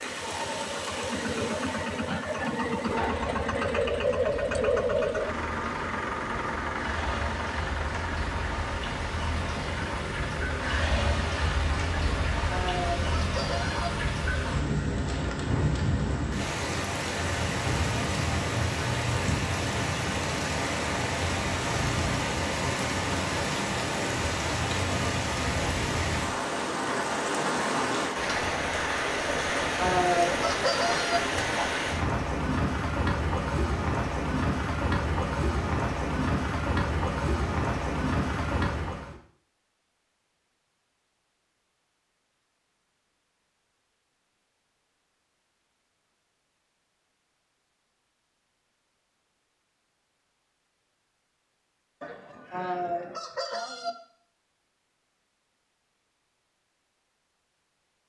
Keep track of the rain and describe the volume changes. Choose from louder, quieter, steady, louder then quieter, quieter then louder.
louder.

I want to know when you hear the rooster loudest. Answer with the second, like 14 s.
30 s.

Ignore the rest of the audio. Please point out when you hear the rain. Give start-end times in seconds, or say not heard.
0.0-39.1.